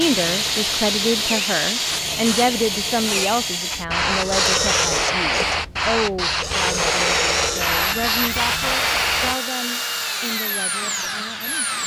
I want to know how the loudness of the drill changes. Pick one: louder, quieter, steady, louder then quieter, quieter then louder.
steady.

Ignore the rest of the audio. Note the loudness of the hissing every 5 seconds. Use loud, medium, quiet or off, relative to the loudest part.
loud, loud, off.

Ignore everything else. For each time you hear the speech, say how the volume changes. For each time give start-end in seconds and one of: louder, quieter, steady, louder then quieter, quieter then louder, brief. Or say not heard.
0.0-11.8 quieter.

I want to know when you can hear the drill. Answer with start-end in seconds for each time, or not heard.
0.0-11.8.